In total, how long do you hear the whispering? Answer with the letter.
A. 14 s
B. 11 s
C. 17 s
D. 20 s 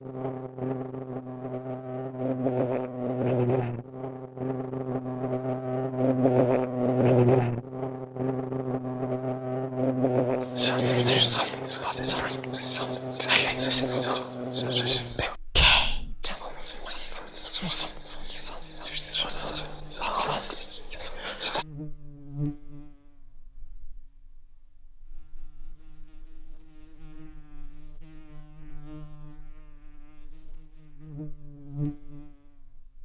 B.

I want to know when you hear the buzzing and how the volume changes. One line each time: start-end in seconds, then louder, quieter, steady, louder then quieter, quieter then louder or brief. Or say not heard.
0.0-32.9 quieter.